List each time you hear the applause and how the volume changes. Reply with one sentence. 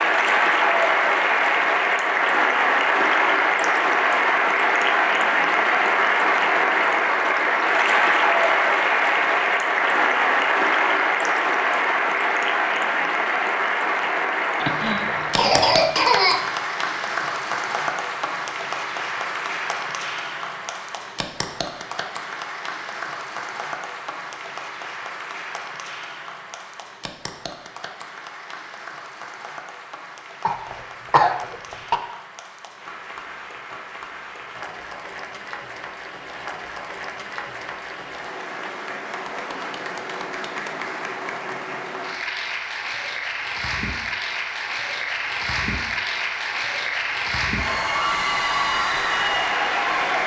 You can hear the applause from 0.0 to 50.2 s, getting quieter then louder.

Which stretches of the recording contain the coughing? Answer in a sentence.
You can hear the coughing from 14.6 to 16.5 s and from 30.4 to 32.0 s.